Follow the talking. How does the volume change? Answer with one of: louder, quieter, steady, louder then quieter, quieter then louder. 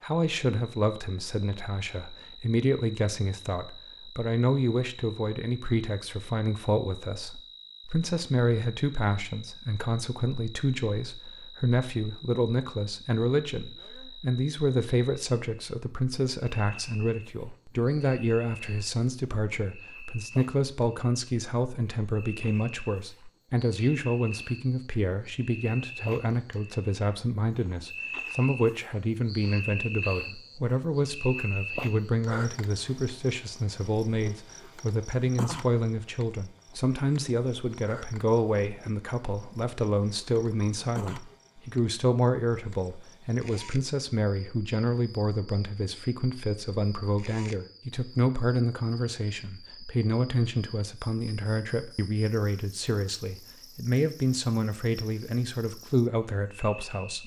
steady.